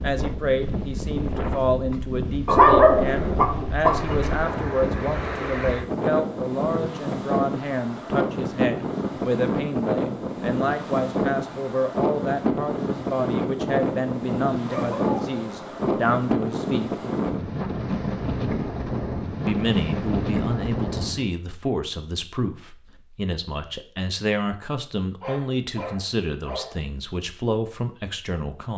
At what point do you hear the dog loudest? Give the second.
3 s.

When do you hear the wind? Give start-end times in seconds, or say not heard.
0.0-21.3.